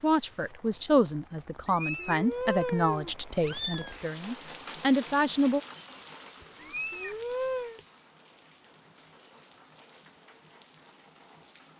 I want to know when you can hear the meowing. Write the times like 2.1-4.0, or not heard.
1.6-4.0, 6.6-7.8.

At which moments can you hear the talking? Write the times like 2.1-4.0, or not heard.
0.0-5.6.